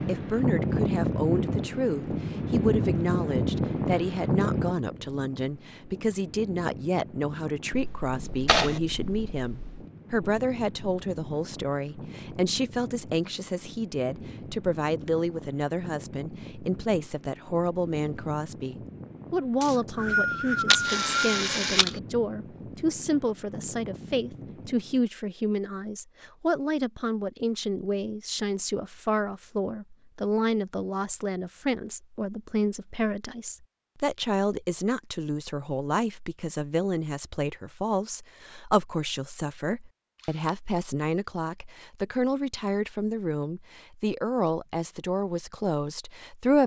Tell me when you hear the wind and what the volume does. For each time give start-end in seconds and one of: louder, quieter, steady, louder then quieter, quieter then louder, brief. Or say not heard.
0.0-25.1 quieter.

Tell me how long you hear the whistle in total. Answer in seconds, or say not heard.
2 s.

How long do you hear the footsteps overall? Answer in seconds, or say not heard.
not heard.